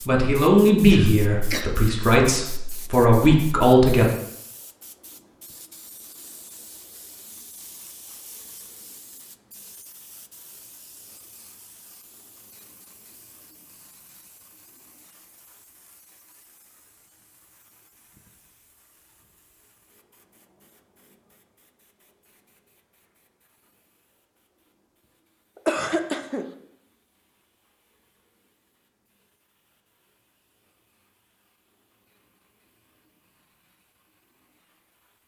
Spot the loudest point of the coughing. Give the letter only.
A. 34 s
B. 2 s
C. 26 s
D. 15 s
C.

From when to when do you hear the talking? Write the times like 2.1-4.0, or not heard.
0.1-4.0.